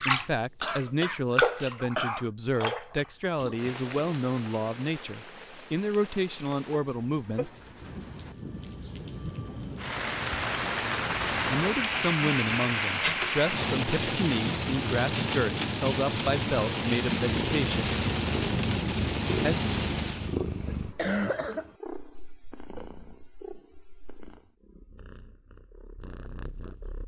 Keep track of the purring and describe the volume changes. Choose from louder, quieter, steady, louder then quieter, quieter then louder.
quieter.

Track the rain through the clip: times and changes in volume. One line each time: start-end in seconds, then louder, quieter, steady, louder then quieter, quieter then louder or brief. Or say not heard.
0.0-20.4 quieter then louder.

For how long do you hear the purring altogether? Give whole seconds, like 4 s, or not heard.
10 s.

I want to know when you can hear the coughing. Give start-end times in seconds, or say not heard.
0.6-2.3, 20.6-21.8.